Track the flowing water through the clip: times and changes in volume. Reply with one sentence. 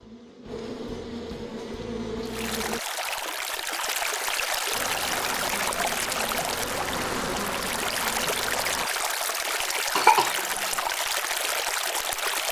You can hear the flowing water from 2.2 to 12.4 s, at a steady volume.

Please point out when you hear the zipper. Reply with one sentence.
The zipper can't be heard in this clip.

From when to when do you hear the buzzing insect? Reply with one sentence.
The buzzing insect can be heard from 0.0 to 2.8 s and from 4.7 to 8.9 s.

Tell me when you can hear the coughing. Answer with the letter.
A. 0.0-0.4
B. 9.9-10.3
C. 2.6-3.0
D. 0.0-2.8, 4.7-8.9
B.